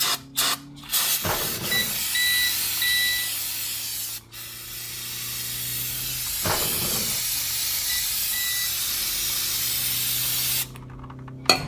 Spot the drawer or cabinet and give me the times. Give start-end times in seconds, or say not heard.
1.2-2.0, 6.4-7.2.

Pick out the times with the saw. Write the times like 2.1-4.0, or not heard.
not heard.